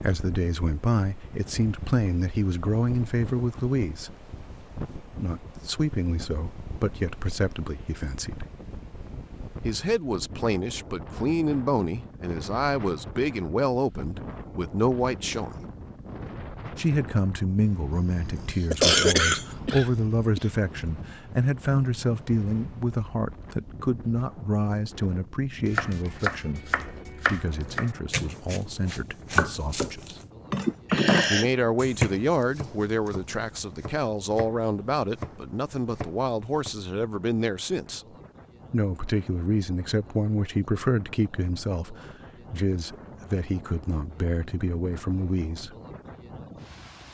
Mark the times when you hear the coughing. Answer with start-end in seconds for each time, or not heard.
17.9-20.4, 30.6-31.5.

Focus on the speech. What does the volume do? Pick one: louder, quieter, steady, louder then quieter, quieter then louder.
steady.